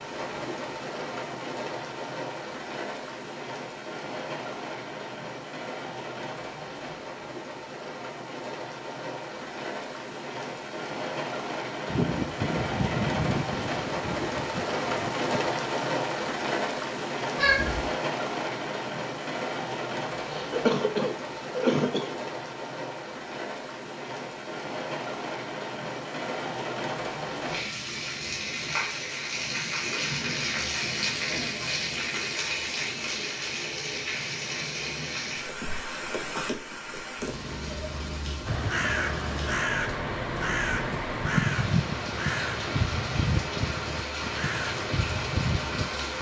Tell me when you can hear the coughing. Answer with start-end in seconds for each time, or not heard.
20.2-22.2.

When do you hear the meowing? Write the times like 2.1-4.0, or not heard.
17.4-17.9.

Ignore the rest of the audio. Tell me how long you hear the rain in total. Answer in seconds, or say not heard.
46 s.